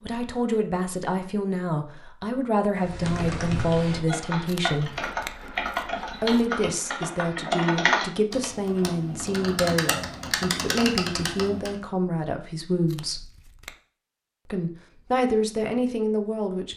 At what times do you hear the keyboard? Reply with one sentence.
The keyboard can be heard from 2.8 to 11.8 s.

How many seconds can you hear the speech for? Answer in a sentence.
You can hear the speech for 14 seconds altogether.